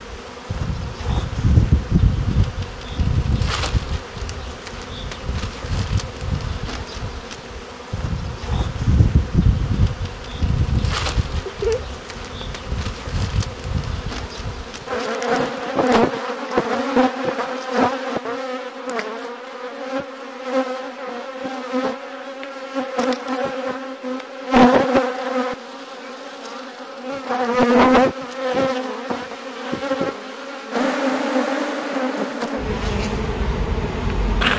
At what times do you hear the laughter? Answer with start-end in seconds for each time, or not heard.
11.4-12.4.